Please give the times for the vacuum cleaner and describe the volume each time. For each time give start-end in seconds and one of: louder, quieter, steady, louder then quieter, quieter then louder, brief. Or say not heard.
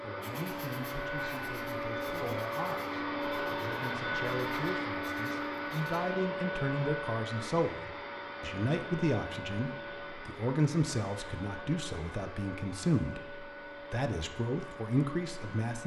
0.0-15.8 quieter.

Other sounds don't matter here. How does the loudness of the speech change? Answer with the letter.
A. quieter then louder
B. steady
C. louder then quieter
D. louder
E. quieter
D.